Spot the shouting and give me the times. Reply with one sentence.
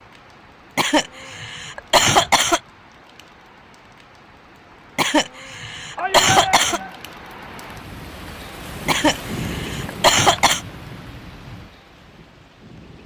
You can hear the shouting from 6.0 to 7.0 s.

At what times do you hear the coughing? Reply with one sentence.
You can hear the coughing from 0.8 to 2.6 s, from 5.0 to 6.8 s and from 8.8 to 10.6 s.